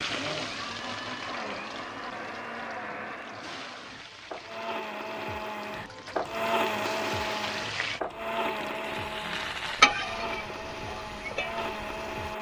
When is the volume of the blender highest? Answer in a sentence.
The volume of the blender peaks at 7 seconds.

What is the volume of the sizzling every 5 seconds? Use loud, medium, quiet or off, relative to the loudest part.
medium, loud, medium.